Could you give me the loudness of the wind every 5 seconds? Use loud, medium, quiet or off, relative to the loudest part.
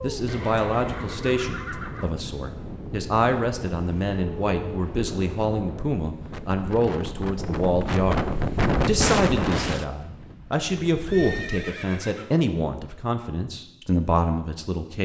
medium, loud, quiet.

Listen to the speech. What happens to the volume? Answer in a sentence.
The volume of the speech stays about the same.